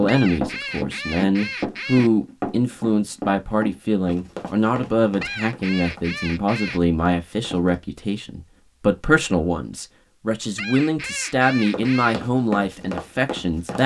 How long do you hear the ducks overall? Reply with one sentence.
The ducks can be heard for 5 seconds in total.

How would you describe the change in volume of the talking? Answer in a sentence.
The volume of the talking stays about the same.